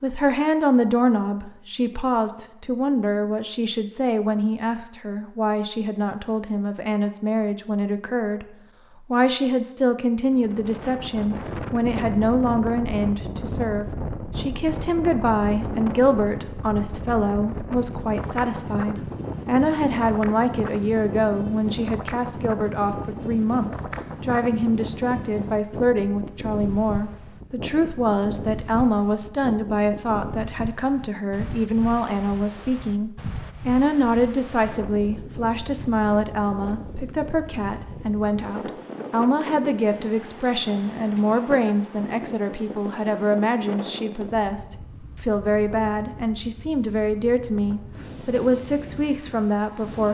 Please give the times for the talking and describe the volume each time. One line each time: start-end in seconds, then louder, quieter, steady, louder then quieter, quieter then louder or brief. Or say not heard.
0.0-50.0 steady.